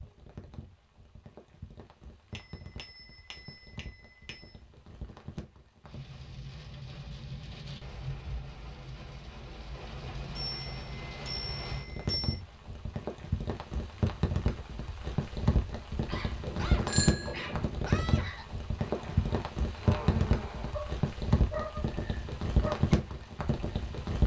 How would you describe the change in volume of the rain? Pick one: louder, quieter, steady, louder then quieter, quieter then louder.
louder.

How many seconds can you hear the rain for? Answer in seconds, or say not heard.
24 s.